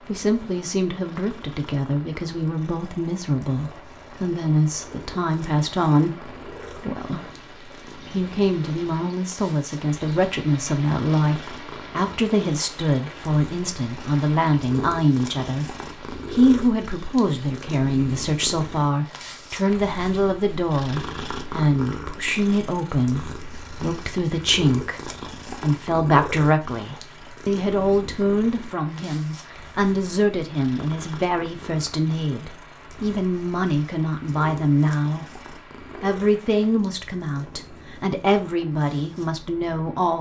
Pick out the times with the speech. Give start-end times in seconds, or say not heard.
0.1-15.7, 16.3-35.3, 36.0-40.1.